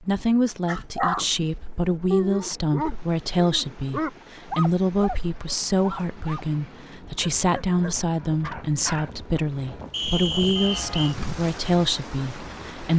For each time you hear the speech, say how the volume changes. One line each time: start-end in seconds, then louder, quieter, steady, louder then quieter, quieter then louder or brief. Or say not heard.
0.0-12.9 steady.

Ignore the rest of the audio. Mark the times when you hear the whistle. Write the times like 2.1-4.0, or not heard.
9.9-11.2.